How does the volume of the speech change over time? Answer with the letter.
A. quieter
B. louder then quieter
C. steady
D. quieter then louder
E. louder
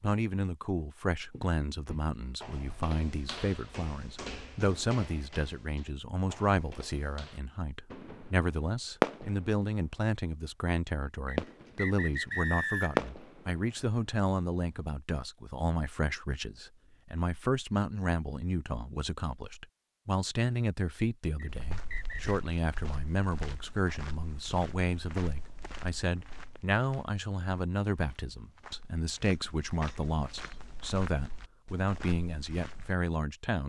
C.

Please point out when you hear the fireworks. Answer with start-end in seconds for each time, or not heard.
7.9-9.7, 11.3-13.6.